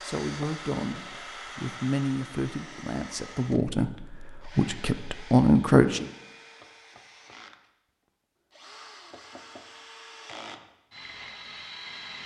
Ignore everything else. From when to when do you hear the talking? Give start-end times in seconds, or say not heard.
0.0-6.0.